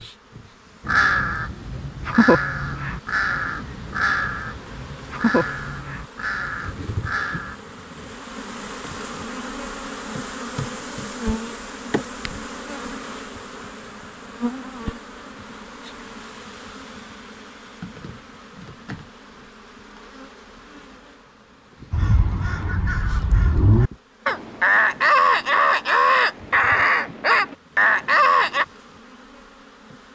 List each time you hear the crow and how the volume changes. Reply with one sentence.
The crow can be heard from 0.8 to 7.5 s, getting quieter; and from 21.9 to 28.6 s, getting louder.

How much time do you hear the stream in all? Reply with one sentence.
You can't hear the stream here.